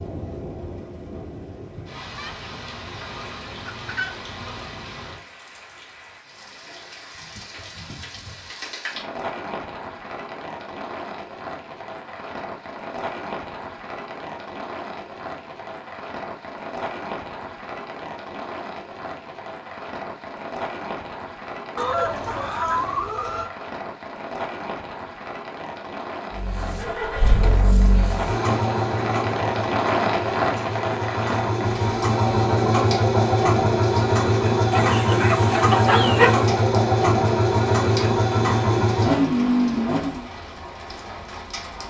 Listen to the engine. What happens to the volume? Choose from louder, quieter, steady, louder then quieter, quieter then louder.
louder.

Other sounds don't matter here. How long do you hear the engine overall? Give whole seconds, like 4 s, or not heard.
14 s.